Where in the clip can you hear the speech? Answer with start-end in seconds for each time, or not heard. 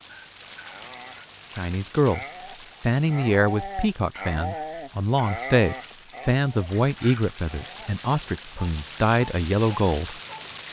1.6-10.2.